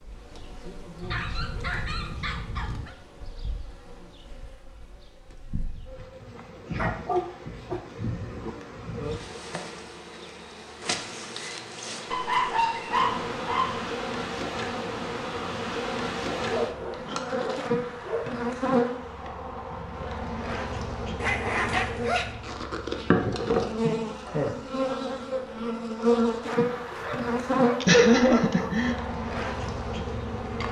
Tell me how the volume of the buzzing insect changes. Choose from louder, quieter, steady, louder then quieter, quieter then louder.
louder.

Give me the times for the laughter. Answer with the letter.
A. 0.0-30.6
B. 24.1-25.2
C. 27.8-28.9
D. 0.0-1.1
C.